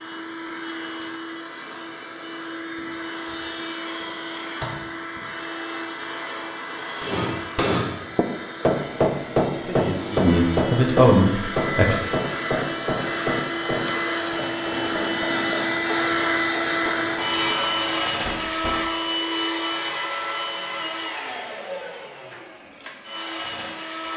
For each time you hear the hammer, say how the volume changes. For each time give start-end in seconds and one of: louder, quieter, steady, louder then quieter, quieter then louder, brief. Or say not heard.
7.0-18.9 quieter.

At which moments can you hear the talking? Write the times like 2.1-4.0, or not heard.
9.6-12.0.